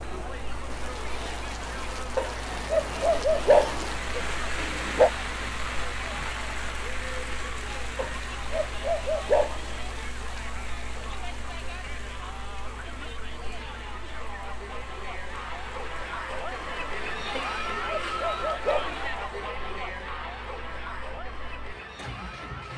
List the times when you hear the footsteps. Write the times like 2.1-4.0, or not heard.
not heard.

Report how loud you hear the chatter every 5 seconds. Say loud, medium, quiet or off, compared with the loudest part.
medium, medium, medium, loud, medium.